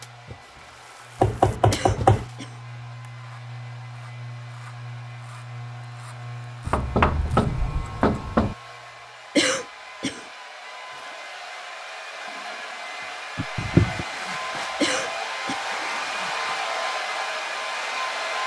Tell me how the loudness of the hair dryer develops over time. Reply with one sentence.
The volume of the hair dryer goes up.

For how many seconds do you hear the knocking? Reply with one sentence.
You can hear the knocking for 4 seconds altogether.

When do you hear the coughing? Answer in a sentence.
The coughing can be heard from 1.7 to 2.5 s, from 9.3 to 10.2 s and from 14.8 to 15.6 s.